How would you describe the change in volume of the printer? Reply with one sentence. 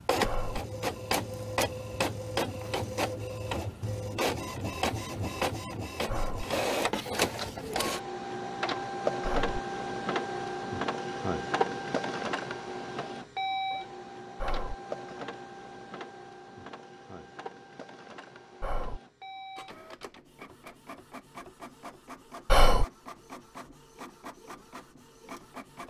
The volume of the printer goes down.